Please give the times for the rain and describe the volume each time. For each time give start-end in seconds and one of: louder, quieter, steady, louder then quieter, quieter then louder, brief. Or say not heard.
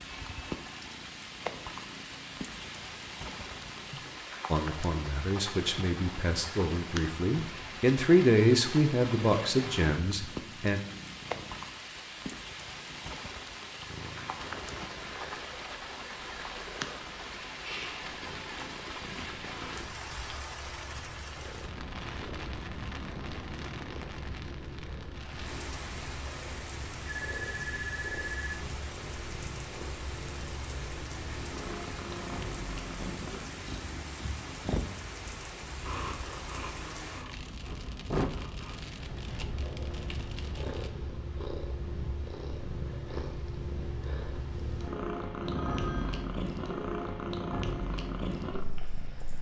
0.0-40.9 steady.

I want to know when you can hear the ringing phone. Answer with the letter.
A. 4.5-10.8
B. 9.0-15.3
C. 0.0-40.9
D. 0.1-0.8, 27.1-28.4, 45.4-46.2
D.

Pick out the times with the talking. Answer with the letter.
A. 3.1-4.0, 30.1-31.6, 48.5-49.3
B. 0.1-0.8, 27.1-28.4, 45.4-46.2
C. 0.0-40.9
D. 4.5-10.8
D.